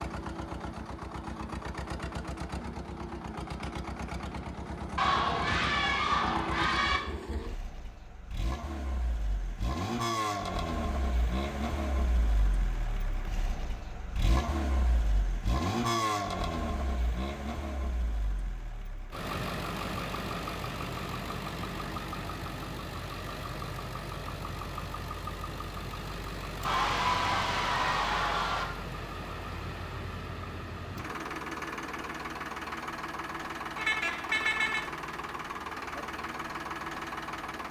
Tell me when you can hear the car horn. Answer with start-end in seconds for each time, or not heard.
33.8-34.9.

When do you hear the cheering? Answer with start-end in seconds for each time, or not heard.
5.0-7.0, 26.6-28.6.